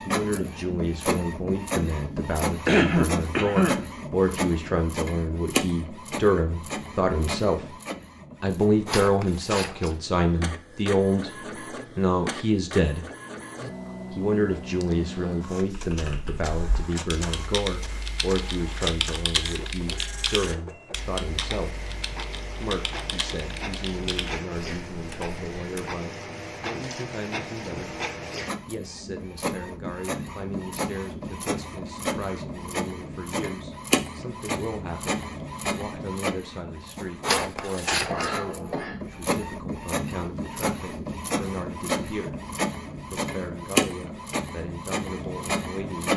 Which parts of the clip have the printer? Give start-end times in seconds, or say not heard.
0.0-46.1.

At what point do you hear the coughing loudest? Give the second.
3 s.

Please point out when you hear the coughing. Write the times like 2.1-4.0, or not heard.
2.6-3.8, 37.6-39.0.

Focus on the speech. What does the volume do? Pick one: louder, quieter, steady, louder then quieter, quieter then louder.
quieter.